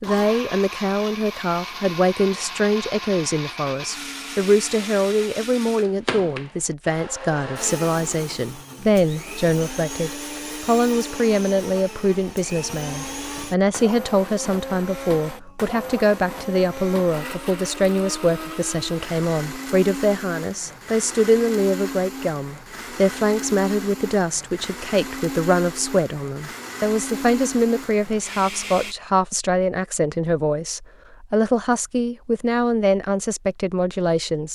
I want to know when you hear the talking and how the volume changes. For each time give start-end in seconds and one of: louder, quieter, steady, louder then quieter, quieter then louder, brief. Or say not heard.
0.0-34.5 steady.